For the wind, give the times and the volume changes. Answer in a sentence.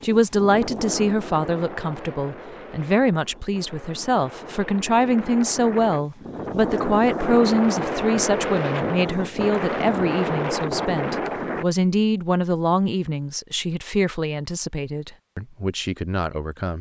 The wind can be heard from 0.0 to 11.7 s, getting quieter then louder.